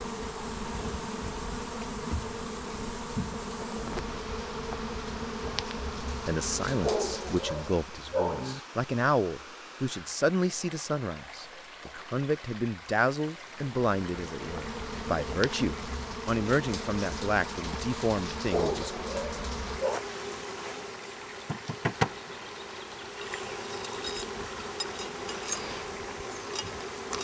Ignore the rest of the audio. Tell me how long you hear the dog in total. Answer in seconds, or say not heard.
3 s.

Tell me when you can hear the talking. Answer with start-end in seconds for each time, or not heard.
6.2-18.9.